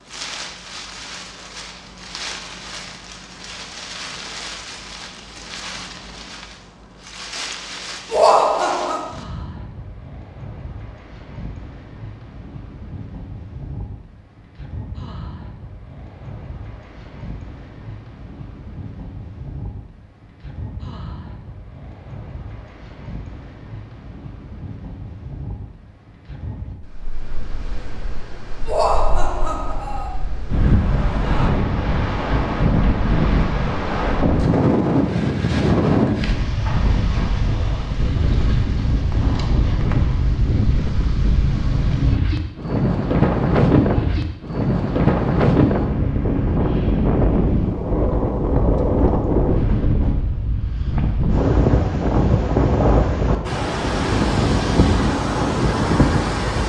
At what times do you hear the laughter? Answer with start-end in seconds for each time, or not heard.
8.1-9.1, 28.6-30.1.